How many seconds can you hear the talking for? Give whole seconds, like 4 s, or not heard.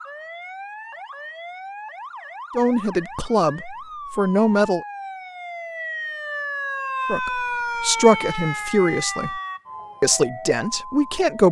6 s.